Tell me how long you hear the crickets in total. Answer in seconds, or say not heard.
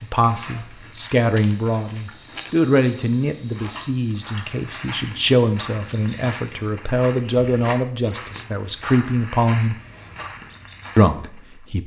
7 s.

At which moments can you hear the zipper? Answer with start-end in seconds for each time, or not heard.
not heard.